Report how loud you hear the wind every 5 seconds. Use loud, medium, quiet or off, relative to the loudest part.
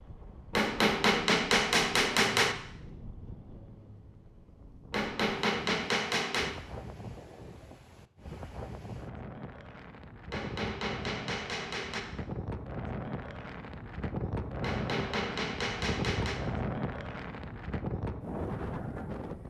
quiet, medium, loud, loud.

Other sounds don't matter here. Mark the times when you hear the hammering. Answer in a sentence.
You can hear the hammering from 0.5 to 2.5 s, from 4.9 to 6.5 s, from 10.3 to 12.1 s and from 14.6 to 16.4 s.